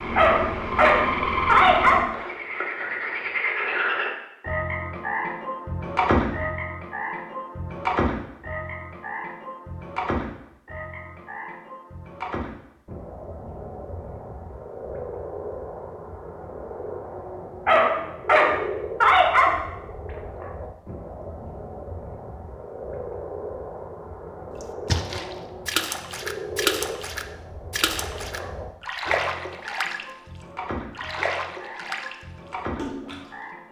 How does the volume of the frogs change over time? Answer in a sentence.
The loudness of the frogs goes down.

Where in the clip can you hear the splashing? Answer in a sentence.
You can hear the splashing from 24.6 to 30.1 s, from 30.9 to 32.1 s and from 32.8 to 33.4 s.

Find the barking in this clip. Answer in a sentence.
You can hear the barking from 0.1 to 2.0 s and from 17.6 to 19.5 s.